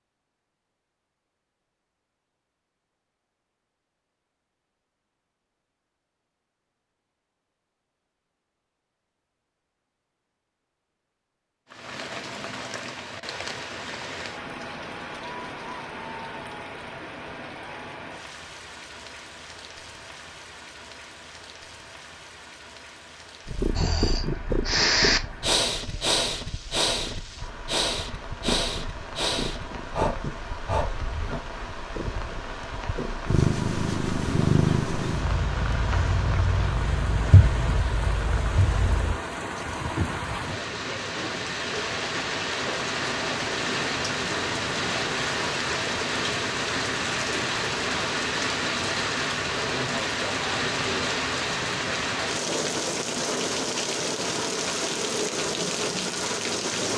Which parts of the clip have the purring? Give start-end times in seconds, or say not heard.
23.4-39.2.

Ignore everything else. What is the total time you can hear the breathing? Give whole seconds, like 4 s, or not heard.
8 s.